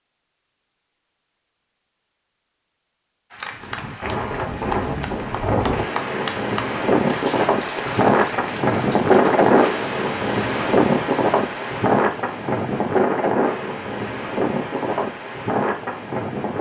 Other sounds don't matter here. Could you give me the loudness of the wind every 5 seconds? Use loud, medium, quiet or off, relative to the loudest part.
medium, loud, loud, medium.